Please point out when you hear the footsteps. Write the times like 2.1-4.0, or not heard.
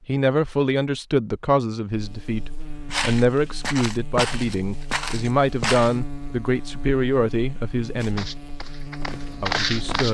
2.9-6.0, 8.0-10.0.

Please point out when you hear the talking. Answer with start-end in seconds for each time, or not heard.
0.1-8.3, 9.4-10.0.